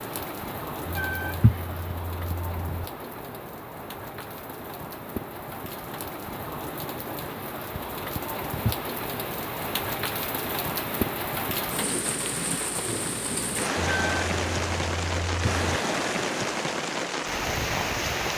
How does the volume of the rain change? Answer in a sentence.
The loudness of the rain goes up.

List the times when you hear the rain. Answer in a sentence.
The rain can be heard from 0.0 to 18.3 s.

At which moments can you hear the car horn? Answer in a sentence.
You can hear the car horn from 0.8 to 2.9 s and from 13.8 to 15.6 s.